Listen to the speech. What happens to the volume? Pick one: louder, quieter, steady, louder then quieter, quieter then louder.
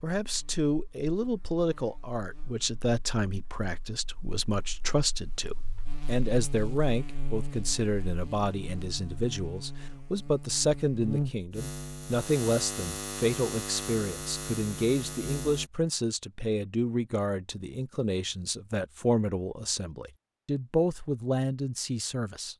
steady.